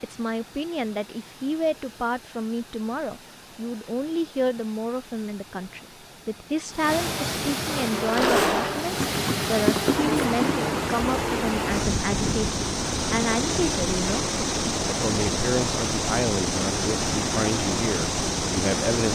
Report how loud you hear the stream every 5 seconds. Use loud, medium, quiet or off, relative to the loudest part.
quiet, medium, loud, loud.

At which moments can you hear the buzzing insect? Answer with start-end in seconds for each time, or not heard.
7.7-10.6.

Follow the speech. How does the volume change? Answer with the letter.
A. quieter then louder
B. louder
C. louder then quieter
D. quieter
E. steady
E.